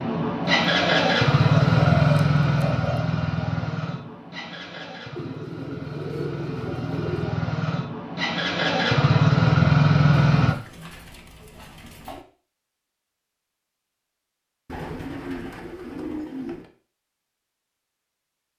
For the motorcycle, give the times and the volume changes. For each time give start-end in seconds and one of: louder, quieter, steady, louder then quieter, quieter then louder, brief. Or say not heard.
0.0-10.6 quieter then louder.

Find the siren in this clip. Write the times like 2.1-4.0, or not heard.
not heard.